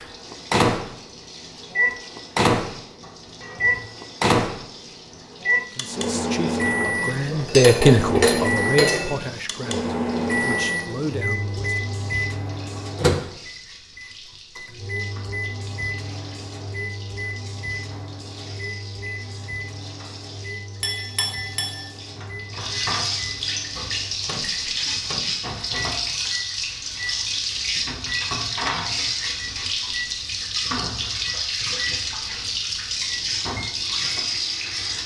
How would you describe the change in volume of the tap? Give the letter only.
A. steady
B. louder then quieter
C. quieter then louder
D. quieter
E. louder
E.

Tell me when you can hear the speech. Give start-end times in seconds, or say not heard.
5.8-11.8.